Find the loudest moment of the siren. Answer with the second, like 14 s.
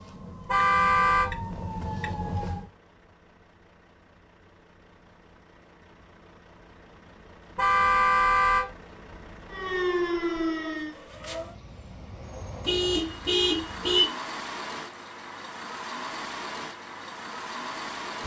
10 s.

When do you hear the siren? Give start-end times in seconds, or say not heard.
0.0-2.7, 9.5-11.6.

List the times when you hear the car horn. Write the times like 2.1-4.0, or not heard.
0.5-1.3, 7.5-8.7, 12.7-14.1.